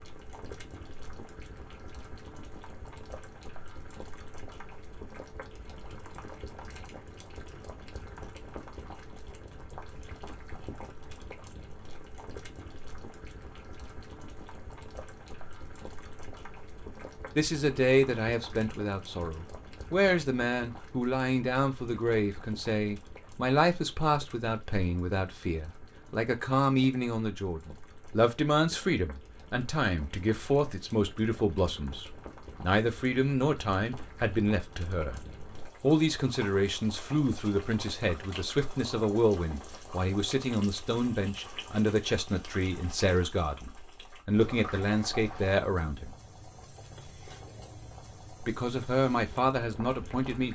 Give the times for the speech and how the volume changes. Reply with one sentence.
You can hear the speech from 17.4 to 46.1 s, at a steady volume; and briefly from 48.4 to 50.5 s.